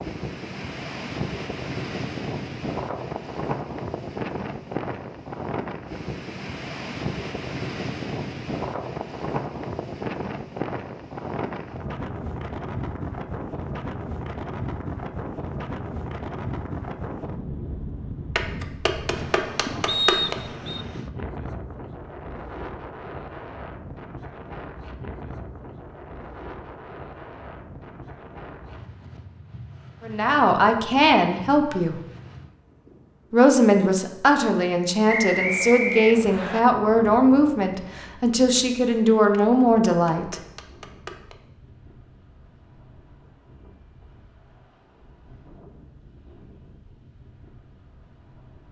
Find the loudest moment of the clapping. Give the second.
20 s.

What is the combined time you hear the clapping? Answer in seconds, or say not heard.
4 s.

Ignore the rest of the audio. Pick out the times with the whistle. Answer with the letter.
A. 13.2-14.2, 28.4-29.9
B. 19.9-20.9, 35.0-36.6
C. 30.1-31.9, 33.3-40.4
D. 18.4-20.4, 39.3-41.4
B.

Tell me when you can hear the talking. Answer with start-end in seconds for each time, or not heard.
30.1-31.9, 33.3-40.4.